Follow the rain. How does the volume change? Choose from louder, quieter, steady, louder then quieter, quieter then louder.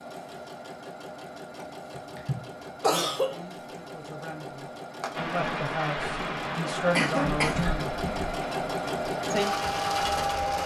quieter.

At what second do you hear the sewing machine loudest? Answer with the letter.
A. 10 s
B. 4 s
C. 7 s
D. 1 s
A.